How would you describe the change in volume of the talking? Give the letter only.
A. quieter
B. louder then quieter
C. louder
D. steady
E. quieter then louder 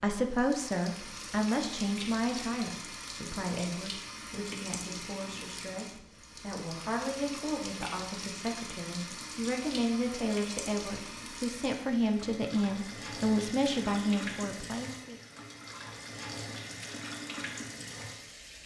E.